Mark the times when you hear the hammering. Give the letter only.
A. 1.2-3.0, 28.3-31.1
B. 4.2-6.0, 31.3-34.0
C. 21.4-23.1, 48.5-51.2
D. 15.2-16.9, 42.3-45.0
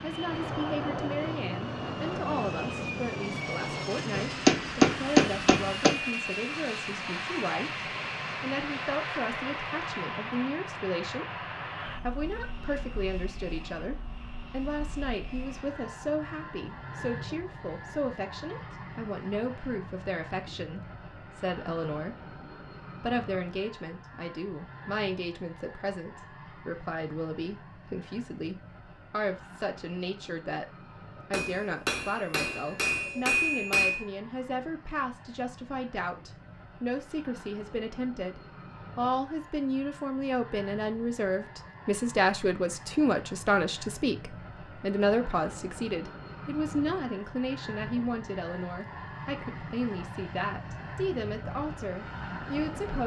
B.